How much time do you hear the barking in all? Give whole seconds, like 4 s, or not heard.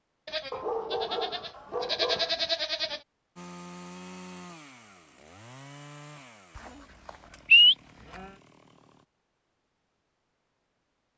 2 s.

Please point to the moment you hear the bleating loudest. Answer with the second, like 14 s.
8 s.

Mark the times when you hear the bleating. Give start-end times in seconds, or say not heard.
0.2-3.0, 6.5-8.2.